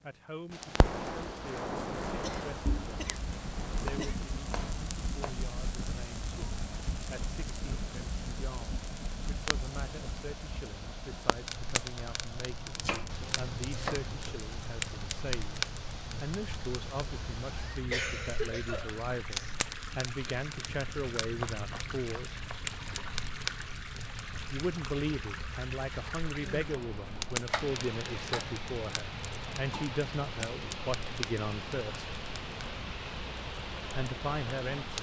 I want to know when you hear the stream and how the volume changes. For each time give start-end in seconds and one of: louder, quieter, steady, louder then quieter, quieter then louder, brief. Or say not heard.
0.0-34.9 louder.